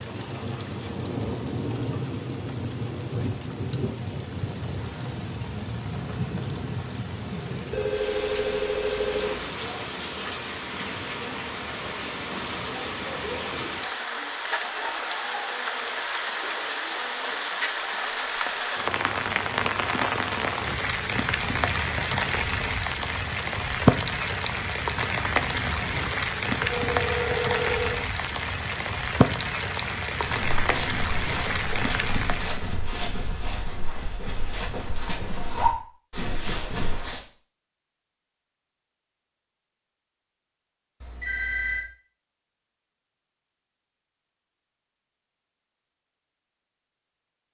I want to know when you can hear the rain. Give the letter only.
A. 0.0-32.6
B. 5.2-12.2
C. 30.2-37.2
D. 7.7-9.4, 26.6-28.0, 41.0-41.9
A.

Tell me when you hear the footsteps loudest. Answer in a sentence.
The loudest moment of the footsteps is at 36 seconds.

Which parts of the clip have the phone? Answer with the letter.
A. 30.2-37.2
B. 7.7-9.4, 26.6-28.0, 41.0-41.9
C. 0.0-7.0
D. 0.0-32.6
B.